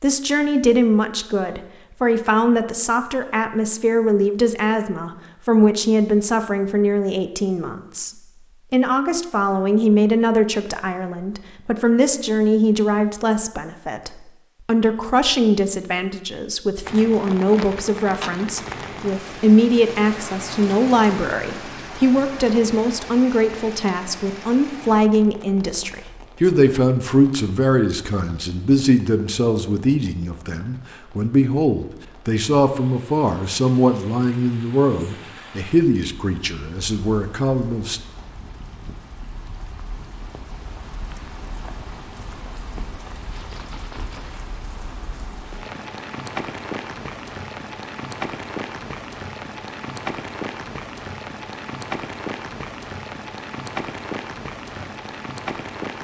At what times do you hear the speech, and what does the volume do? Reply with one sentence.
The speech can be heard from 0.0 to 38.0 s, at a steady volume.